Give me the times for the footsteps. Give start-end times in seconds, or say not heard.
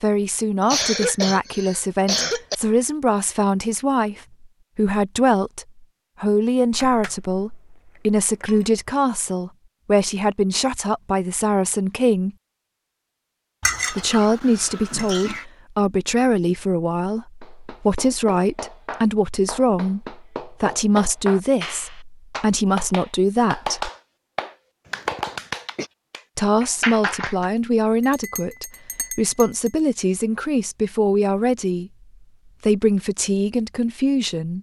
not heard.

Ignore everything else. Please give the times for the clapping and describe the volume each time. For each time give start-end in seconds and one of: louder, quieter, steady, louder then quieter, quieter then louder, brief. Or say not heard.
17.4-27.5 louder.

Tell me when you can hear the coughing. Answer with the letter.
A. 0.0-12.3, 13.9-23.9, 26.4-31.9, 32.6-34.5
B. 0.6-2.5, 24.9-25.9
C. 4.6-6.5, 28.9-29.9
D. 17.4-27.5
B.